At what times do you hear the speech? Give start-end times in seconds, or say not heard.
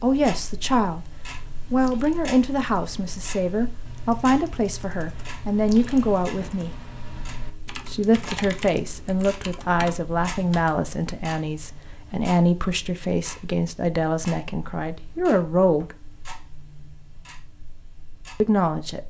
0.0-1.1, 1.7-6.7, 7.8-16.0, 18.4-19.0.